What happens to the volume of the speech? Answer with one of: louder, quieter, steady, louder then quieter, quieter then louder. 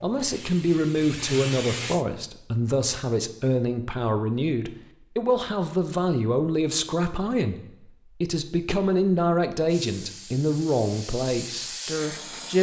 steady.